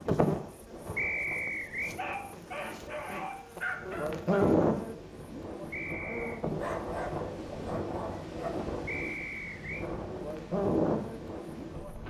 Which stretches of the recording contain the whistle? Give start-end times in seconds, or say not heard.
0.9-1.9, 5.7-6.4, 8.8-9.8.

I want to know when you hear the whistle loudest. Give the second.
1 s.